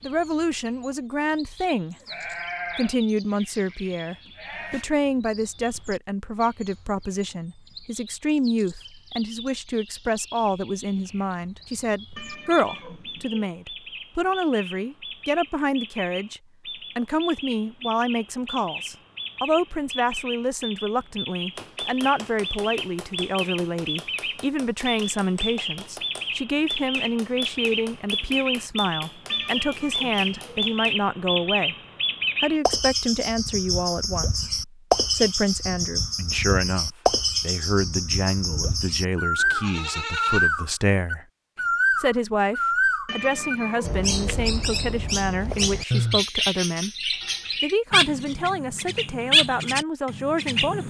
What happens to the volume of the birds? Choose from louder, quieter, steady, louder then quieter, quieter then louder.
louder.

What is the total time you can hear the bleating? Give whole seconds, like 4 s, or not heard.
4 s.